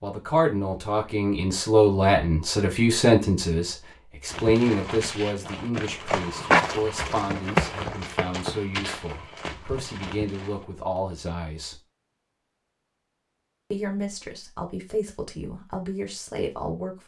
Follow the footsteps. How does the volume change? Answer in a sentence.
The loudness of the footsteps goes up, then down.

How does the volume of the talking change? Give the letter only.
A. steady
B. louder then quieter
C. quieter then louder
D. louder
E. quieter
E.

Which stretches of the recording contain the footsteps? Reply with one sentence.
The footsteps can be heard from 4.3 to 10.7 s.